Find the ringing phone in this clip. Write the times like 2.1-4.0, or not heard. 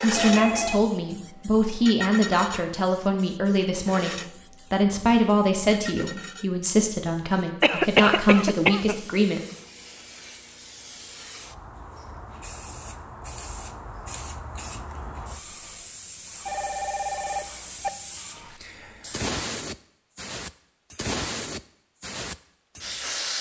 0.1-0.8, 16.4-17.9.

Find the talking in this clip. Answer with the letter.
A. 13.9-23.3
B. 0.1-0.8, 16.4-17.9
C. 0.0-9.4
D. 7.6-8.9
C.